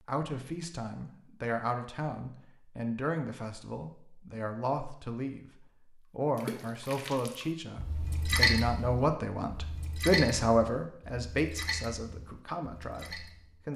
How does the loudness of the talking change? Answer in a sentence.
The volume of the talking goes up, then down.